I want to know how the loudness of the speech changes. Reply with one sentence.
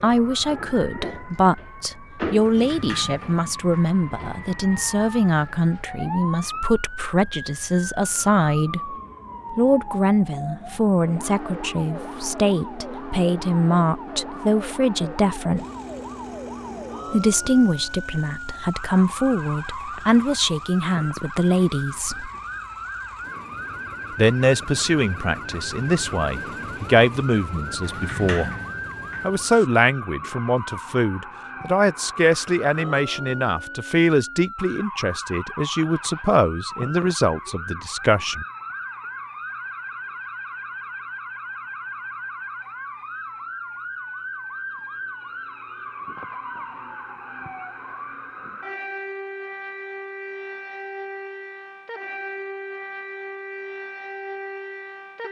The volume of the speech stays about the same.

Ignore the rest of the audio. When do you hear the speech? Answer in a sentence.
You can hear the speech from 0.0 to 15.7 s, from 17.1 to 22.3 s, from 24.1 to 28.5 s and from 29.2 to 38.5 s.